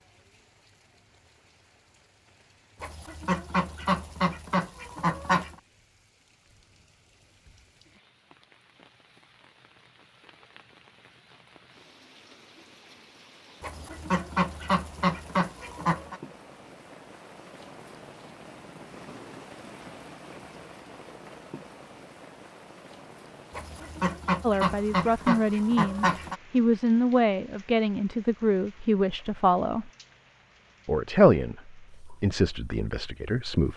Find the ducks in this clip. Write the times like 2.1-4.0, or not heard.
2.8-5.5, 13.6-16.2, 23.5-26.4.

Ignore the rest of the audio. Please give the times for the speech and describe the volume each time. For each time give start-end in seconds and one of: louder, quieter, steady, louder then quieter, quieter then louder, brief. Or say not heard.
24.4-29.9 steady
30.9-33.7 brief.